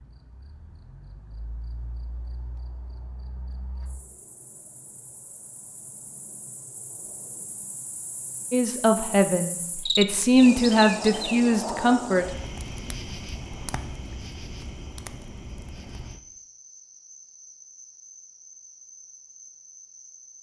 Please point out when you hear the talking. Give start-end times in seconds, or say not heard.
8.5-12.2.